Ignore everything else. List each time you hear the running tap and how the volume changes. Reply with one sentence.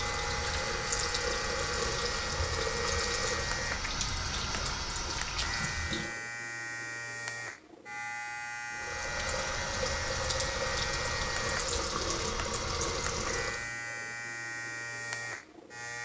The running tap can be heard from 0.0 to 6.2 s, at a steady volume; and from 8.7 to 13.8 s, at a steady volume.